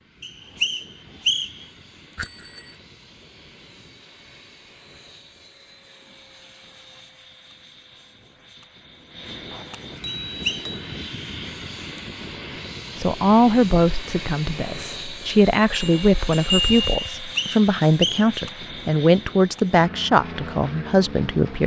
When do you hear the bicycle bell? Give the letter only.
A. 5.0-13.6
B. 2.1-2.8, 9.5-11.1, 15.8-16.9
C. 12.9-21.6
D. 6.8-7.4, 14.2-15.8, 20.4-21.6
B.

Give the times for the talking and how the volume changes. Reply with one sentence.
You can hear the talking from 12.9 to 21.6 s, at a steady volume.